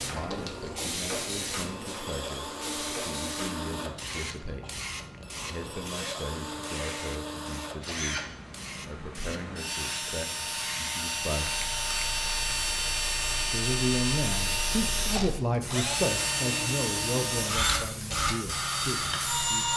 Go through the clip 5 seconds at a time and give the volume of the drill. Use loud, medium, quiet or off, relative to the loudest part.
medium, medium, loud, loud.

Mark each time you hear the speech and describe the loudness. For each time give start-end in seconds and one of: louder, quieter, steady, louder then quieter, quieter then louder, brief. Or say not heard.
0.0-11.7 steady
13.3-19.7 quieter.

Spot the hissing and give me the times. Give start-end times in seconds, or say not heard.
0.0-19.7.